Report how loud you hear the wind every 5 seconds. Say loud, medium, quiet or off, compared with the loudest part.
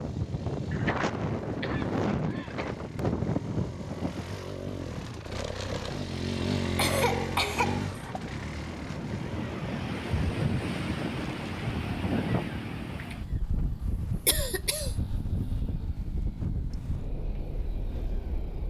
loud, medium, loud, medium.